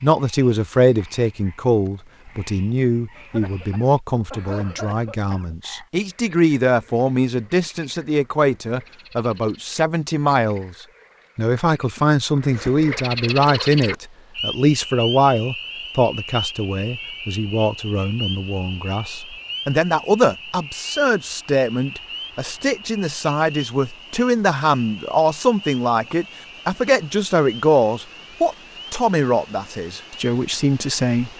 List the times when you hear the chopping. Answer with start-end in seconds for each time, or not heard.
not heard.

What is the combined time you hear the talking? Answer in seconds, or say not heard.
31 s.